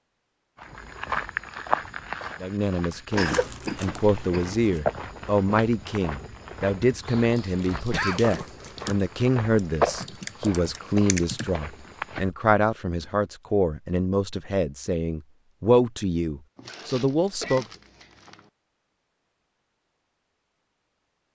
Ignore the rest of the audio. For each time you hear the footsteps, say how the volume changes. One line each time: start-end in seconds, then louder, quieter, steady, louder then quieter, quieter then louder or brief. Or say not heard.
0.6-12.3 quieter then louder.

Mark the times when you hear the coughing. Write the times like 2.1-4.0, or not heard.
3.1-4.5, 7.9-8.4, 16.6-17.7.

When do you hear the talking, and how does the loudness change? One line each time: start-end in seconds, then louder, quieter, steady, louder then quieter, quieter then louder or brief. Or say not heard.
2.4-17.6 steady.